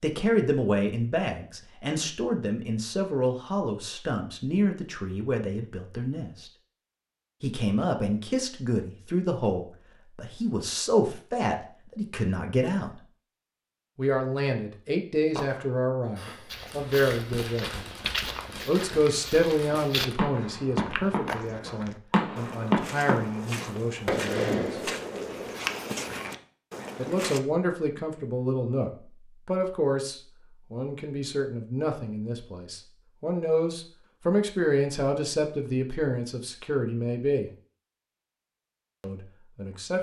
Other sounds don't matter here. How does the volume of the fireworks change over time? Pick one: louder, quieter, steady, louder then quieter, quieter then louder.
louder.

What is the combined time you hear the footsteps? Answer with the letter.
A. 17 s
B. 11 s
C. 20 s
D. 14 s
B.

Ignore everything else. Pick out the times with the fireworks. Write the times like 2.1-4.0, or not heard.
15.3-25.6.